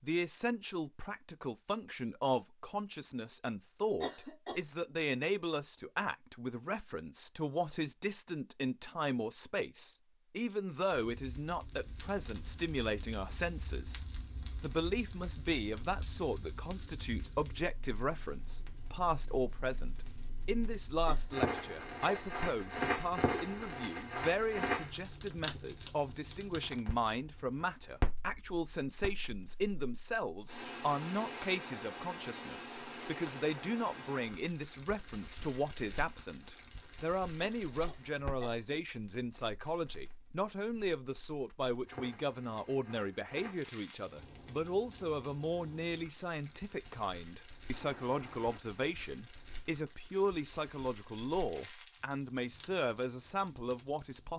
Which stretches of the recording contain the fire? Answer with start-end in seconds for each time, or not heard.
10.9-54.3.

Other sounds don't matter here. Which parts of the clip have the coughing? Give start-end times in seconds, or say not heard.
4.0-4.6, 21.1-22.4, 37.4-38.8.